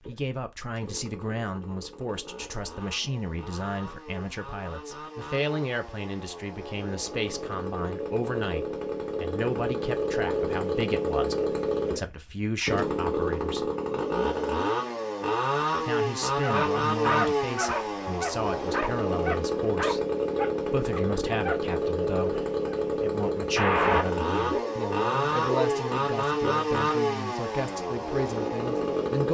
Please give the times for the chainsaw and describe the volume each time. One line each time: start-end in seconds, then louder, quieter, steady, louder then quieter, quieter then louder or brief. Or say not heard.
0.0-29.2 louder.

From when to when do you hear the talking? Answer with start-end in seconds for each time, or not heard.
0.0-13.7, 15.8-20.0, 20.6-29.2.